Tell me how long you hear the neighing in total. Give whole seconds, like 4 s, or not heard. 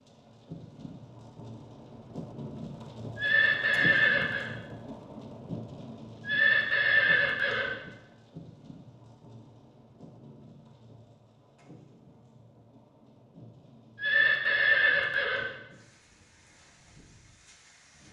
4 s.